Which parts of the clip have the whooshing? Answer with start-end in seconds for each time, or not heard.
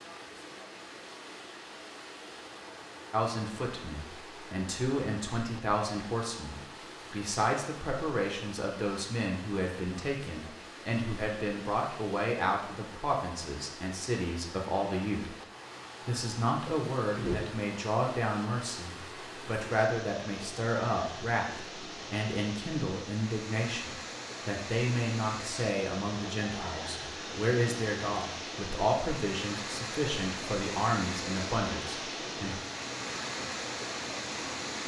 17.1-17.6.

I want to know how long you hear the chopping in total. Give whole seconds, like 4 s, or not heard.
not heard.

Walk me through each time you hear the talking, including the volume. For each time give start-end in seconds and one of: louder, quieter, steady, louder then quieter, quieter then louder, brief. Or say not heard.
3.1-15.3 steady
16.0-32.5 steady.